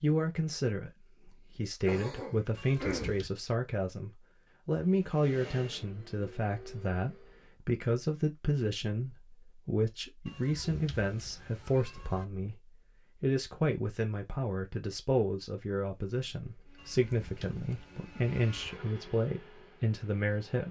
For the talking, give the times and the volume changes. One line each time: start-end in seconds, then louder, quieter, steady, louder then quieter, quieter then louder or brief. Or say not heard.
0.0-20.6 steady.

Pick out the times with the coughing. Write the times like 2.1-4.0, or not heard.
1.9-3.1.